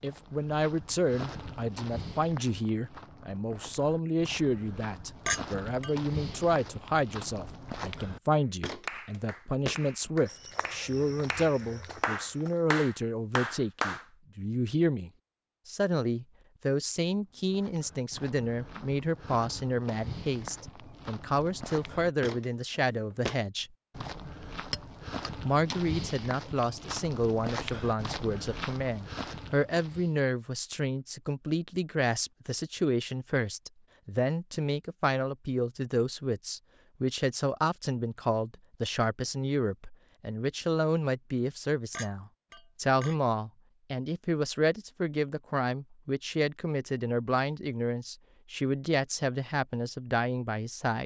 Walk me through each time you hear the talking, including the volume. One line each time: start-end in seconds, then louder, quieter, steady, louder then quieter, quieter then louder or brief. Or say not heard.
0.0-23.7 steady
25.4-51.0 steady.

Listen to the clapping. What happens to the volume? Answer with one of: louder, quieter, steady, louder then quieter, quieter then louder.
louder.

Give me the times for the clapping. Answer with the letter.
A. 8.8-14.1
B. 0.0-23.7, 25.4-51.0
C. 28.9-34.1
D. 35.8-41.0
A.